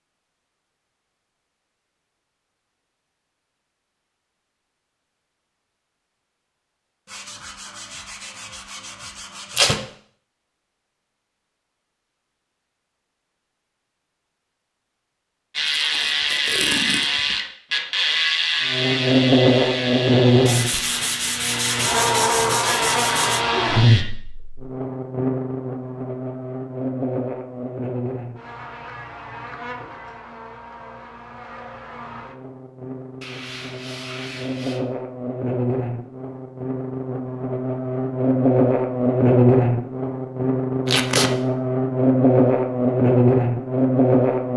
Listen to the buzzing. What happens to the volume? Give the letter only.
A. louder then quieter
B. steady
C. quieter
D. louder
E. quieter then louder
E.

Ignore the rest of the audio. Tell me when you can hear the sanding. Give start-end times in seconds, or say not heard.
7.0-9.8, 20.4-23.4, 33.2-34.8.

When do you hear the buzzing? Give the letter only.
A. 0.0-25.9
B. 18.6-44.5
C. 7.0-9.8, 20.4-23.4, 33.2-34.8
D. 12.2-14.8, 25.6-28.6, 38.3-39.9
B.